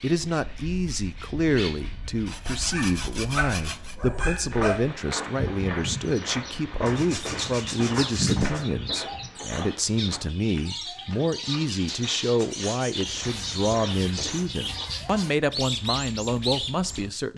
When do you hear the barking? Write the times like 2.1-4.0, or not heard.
2.5-4.8.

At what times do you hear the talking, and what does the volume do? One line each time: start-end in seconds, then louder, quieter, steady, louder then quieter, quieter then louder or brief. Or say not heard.
0.0-17.3 steady.